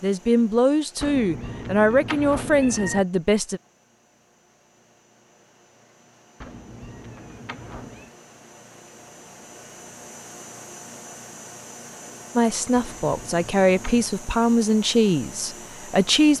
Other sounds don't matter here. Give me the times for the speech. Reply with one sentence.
The speech can be heard from 0.0 to 3.6 s and from 12.3 to 16.3 s.